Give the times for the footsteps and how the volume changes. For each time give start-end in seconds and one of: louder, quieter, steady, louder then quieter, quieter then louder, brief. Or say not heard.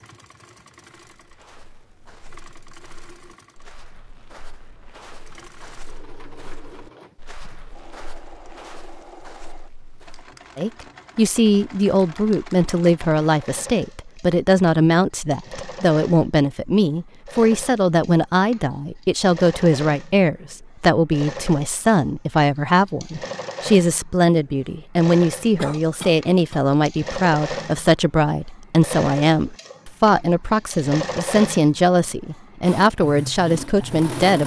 1.2-10.3 louder.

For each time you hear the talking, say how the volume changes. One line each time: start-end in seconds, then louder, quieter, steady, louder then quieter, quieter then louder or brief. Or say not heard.
10.6-34.4 steady.